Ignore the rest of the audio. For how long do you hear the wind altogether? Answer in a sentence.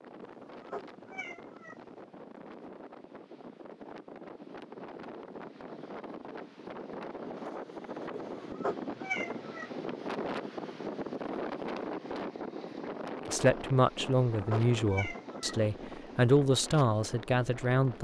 You can hear the wind for 18 seconds altogether.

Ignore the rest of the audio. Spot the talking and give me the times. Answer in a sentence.
You can hear the talking from 13.3 to 17.9 s.